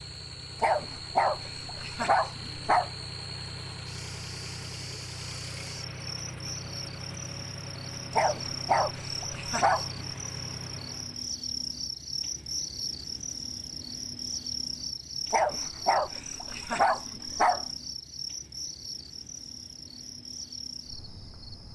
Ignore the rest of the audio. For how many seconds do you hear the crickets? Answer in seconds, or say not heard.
22 s.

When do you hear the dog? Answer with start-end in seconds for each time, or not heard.
0.6-2.9, 8.2-10.0, 15.3-17.6.